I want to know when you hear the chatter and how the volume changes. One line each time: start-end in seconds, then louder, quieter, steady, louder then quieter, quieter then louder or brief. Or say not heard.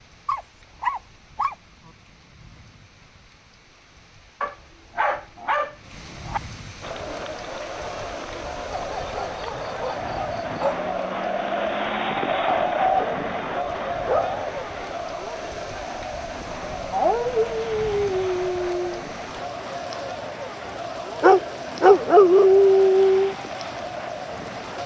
6.8-24.8 louder then quieter.